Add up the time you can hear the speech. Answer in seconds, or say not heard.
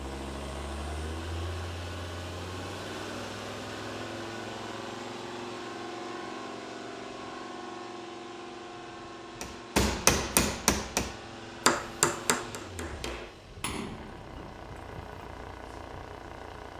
not heard.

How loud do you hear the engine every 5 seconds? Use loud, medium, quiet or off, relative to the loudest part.
loud, loud, medium, medium.